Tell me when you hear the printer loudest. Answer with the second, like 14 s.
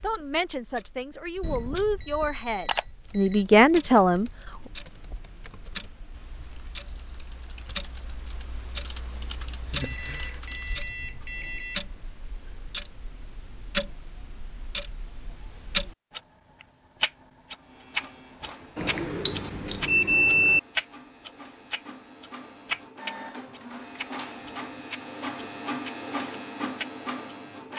26 s.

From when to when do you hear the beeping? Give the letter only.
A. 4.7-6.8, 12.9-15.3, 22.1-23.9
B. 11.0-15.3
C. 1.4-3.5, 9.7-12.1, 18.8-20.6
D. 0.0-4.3
C.